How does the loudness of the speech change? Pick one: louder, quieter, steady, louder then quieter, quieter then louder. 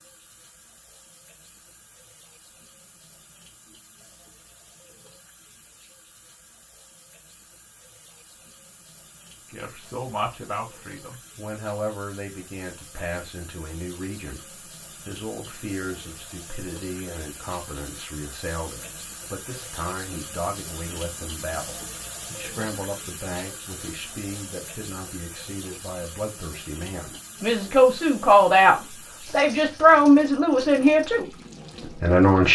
louder.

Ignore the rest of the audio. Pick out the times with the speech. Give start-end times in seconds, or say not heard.
9.5-32.4.